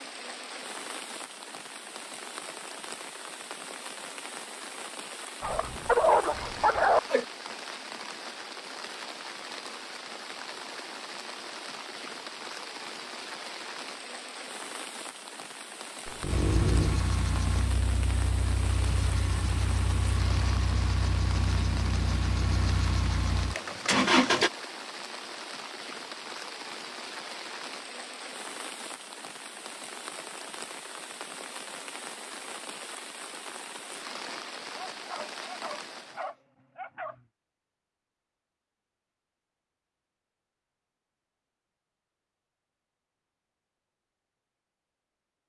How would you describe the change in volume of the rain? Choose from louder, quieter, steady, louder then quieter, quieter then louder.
steady.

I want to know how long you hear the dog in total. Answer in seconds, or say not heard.
5 s.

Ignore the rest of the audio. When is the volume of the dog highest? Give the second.
6 s.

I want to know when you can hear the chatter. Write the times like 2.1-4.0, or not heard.
not heard.